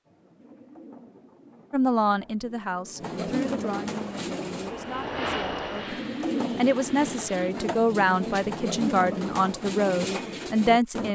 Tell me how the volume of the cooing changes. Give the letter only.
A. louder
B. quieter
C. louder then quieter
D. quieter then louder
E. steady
A.